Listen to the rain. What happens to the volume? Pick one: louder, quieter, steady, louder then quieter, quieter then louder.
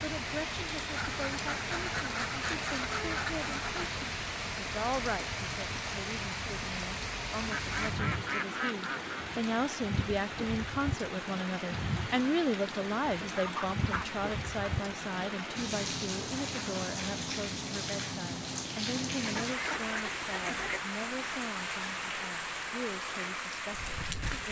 steady.